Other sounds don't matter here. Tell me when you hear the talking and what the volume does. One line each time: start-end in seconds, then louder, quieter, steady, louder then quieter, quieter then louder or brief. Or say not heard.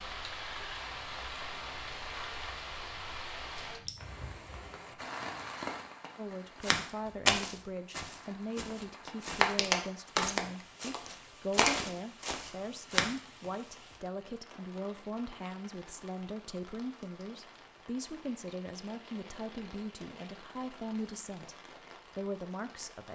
6.2-23.0 steady.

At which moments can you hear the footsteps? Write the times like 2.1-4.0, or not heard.
6.6-13.2.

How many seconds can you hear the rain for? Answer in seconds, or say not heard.
23 s.